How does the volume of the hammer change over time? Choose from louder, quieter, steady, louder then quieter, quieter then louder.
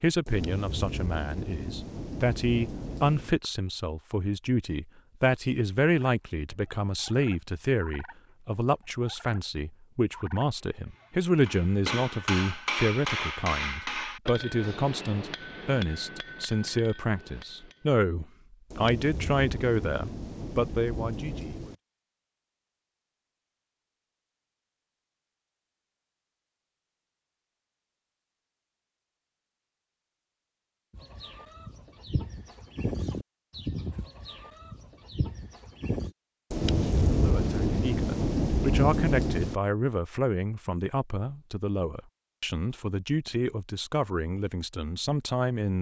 quieter.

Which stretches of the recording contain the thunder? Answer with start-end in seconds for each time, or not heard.
0.2-3.4, 18.7-21.8, 36.5-39.5.